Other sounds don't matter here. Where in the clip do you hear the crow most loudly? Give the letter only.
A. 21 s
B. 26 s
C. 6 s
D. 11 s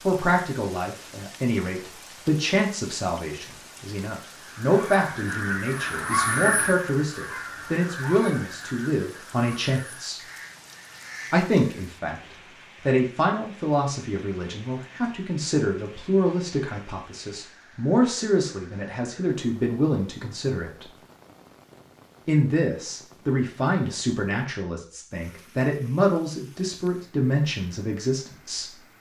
C.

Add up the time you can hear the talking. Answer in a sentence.
The talking can be heard for 26 seconds in total.